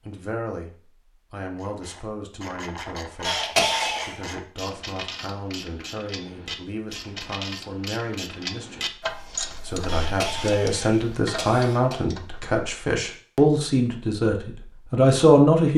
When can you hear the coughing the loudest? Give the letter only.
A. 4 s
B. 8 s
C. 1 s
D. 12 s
A.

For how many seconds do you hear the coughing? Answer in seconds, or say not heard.
3 s.